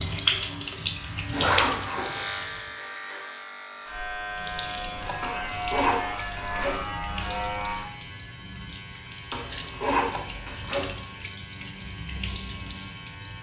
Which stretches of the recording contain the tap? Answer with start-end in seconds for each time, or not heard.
0.0-2.8, 4.2-13.3.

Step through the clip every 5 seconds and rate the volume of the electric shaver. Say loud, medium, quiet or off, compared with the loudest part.
loud, loud, medium.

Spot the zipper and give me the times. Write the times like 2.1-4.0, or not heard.
1.3-2.2, 5.2-6.8, 9.3-10.9.